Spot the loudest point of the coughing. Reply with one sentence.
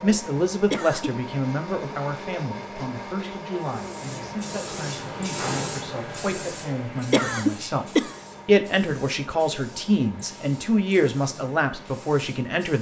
The loudest moment of the coughing is at 7 seconds.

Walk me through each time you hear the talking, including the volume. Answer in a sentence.
The talking can be heard from 0.0 to 12.7 s, getting quieter then louder.